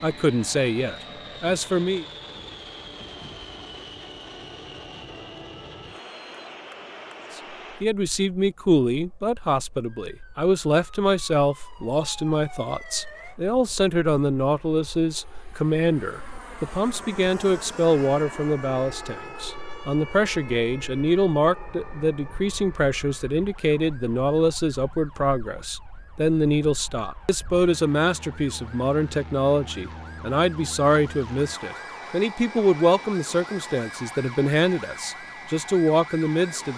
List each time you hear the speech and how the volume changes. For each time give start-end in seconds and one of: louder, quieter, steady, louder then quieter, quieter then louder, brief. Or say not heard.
0.0-2.0 brief
7.3-36.7 steady.